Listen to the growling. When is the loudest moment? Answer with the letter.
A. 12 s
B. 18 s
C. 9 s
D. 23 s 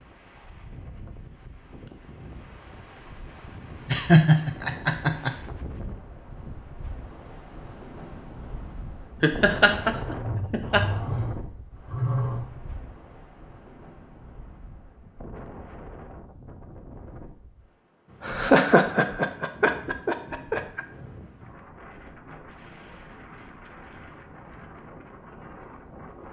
A.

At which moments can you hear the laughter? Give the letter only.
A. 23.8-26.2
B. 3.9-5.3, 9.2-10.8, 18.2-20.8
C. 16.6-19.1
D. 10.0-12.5
B.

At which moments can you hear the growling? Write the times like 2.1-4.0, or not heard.
10.0-12.5.